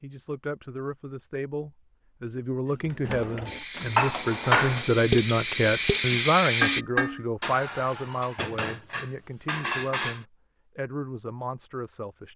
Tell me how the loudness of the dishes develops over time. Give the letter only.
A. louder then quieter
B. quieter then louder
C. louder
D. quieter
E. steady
D.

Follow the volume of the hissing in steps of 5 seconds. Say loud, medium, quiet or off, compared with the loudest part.
medium, loud, off.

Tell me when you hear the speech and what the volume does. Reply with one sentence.
You can hear the speech from 0.0 to 12.3 s, getting louder then quieter.